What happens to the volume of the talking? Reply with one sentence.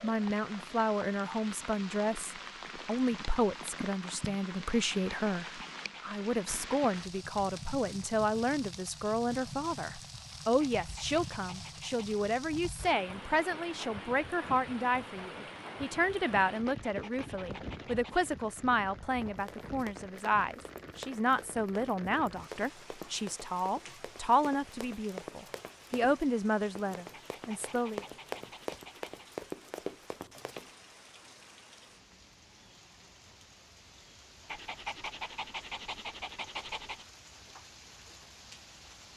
The loudness of the talking stays about the same.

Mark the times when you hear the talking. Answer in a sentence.
You can hear the talking from 0.0 to 28.1 s.